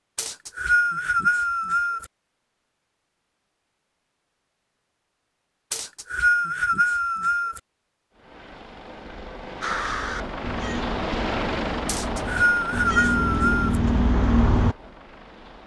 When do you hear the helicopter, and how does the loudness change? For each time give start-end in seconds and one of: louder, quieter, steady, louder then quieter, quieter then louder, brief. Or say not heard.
8.1-15.6 louder then quieter.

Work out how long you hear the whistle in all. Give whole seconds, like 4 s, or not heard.
6 s.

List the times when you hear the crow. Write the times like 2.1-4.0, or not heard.
9.6-14.8.